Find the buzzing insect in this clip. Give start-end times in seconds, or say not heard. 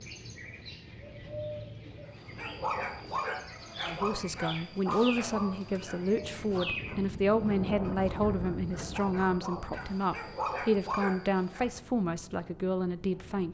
not heard.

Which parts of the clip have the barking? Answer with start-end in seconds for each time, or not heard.
2.4-11.7.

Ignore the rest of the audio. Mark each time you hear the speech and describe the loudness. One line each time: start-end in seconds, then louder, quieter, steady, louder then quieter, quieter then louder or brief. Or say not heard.
3.9-13.4 steady.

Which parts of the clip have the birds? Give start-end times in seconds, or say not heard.
0.0-7.2.